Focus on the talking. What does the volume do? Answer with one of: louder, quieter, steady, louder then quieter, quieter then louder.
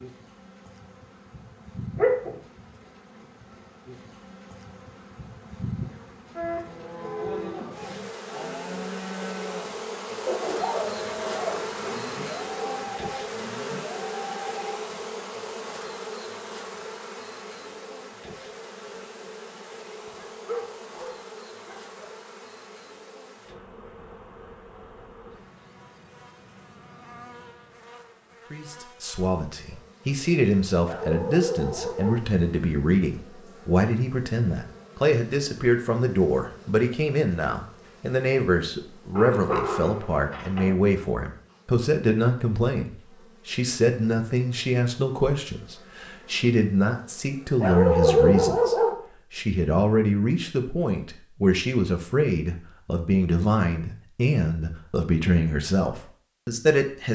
steady.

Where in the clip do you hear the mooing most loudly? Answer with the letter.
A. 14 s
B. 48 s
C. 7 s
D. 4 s
C.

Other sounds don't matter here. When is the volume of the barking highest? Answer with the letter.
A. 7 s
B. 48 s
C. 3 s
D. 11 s
B.